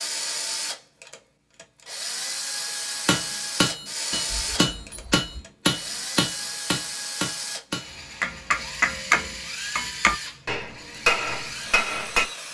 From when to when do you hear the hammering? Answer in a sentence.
You can hear the hammering from 3.0 to 12.2 s.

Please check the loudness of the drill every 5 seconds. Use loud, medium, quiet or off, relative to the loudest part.
loud, loud, medium.